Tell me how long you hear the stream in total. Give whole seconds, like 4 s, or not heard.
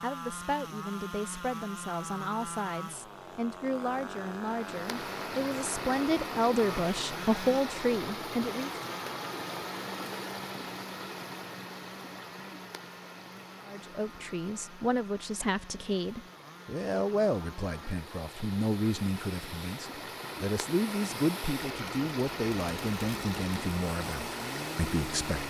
21 s.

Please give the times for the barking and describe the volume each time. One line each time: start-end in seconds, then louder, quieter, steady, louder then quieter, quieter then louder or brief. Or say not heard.
not heard.